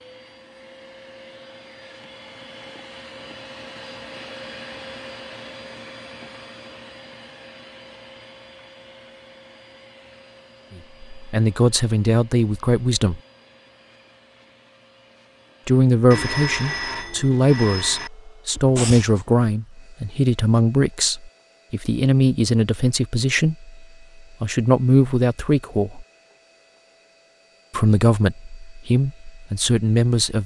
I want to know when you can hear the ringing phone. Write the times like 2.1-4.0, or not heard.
16.1-18.1.